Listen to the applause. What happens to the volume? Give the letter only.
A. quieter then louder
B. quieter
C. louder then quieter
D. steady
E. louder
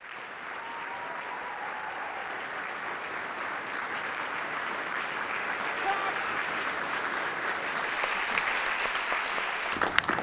E.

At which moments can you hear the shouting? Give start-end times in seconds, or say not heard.
5.8-6.5.